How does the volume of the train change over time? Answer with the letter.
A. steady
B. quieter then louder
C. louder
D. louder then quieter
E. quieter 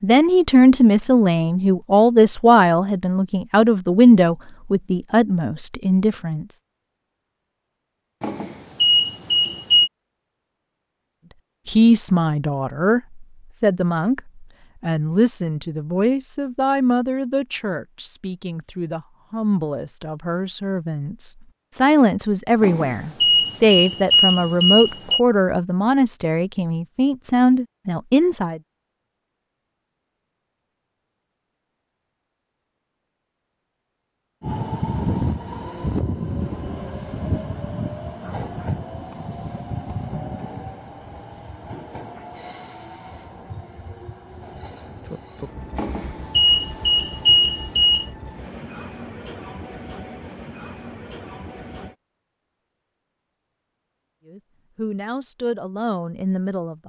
E.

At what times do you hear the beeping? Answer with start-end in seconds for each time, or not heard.
8.2-9.9, 22.6-25.2, 45.8-48.0.